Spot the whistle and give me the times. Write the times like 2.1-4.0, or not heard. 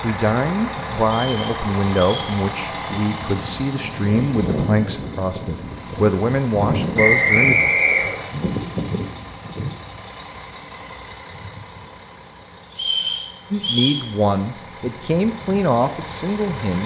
1.1-2.4, 7.0-8.2, 12.7-14.0.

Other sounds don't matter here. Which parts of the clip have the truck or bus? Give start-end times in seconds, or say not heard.
0.0-16.8.